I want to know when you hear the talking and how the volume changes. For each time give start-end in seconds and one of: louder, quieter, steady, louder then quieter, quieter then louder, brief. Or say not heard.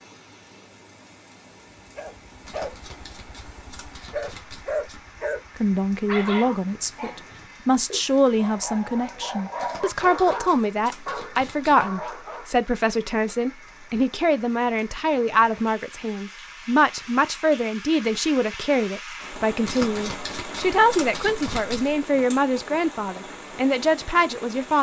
5.5-24.7 steady.